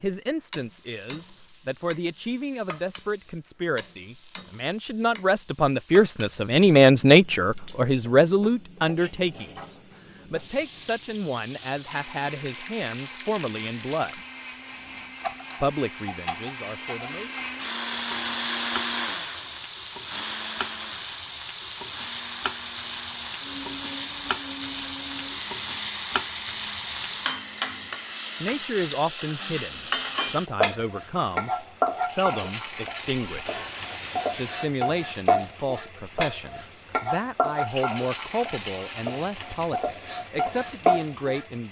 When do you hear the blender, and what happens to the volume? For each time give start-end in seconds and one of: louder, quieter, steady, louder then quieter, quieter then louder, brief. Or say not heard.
11.8-29.6 louder then quieter.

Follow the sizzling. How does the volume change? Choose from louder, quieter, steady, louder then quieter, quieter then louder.
louder.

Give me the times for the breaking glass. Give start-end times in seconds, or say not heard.
33.3-34.7.